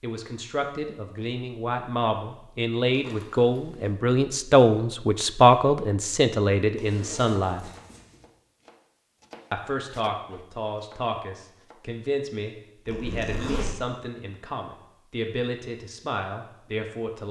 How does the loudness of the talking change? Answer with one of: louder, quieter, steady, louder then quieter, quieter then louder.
louder then quieter.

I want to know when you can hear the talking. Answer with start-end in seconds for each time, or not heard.
0.0-7.7, 9.5-17.2.